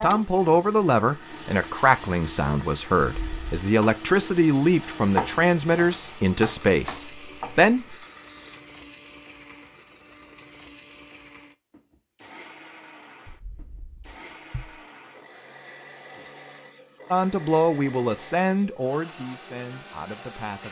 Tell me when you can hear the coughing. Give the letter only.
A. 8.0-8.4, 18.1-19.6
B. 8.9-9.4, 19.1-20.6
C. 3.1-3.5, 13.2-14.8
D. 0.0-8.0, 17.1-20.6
C.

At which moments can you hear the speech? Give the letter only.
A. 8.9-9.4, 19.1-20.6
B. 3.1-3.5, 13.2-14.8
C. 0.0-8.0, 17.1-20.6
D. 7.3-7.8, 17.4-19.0
C.